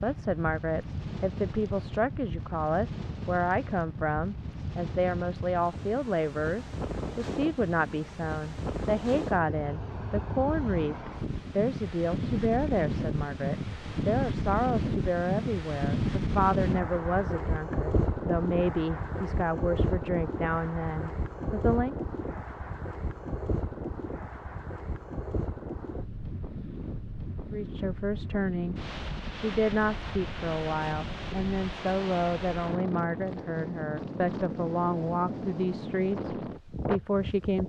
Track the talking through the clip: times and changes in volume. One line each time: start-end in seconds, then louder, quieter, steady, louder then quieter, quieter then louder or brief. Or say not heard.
0.0-21.9 steady
27.5-37.6 steady.